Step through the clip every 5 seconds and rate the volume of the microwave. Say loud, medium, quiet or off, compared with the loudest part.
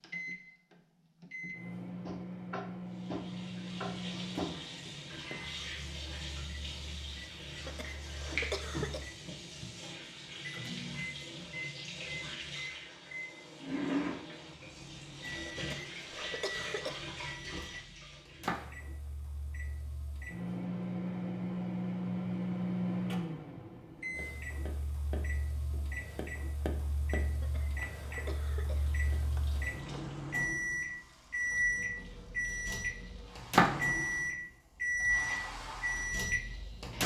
quiet, quiet, quiet, quiet, medium, quiet, loud, loud.